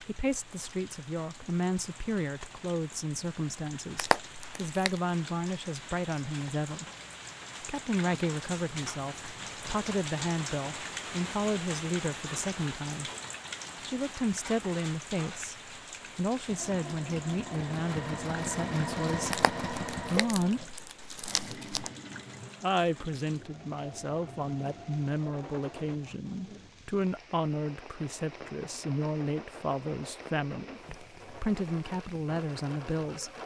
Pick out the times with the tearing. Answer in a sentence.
You can hear the tearing from 4.0 to 5.0 s and from 19.3 to 21.9 s.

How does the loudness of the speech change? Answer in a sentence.
The loudness of the speech stays about the same.